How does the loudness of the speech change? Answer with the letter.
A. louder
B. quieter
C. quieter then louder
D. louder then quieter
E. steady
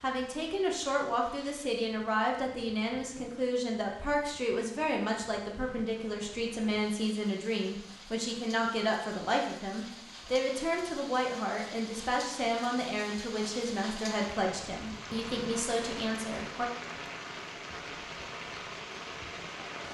E.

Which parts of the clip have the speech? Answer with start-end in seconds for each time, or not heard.
0.0-16.6.